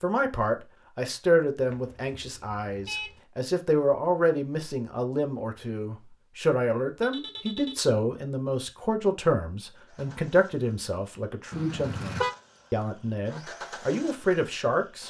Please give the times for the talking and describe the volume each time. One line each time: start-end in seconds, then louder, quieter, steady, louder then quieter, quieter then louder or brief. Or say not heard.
0.0-15.0 steady.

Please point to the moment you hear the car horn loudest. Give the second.
12 s.